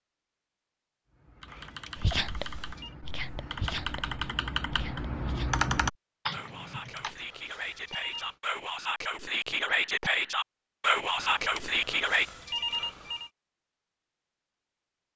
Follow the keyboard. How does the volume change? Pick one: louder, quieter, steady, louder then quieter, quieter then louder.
louder.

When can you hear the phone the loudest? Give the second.
13 s.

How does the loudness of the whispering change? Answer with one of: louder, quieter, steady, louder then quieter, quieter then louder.
quieter then louder.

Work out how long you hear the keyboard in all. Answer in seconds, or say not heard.
6 s.